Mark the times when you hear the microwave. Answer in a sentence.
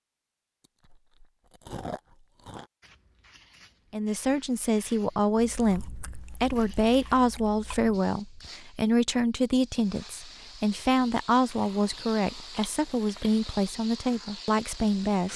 You can't hear the microwave here.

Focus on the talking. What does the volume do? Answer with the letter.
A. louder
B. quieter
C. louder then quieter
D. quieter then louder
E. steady
E.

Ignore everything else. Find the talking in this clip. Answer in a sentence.
The talking can be heard from 3.9 to 15.3 s.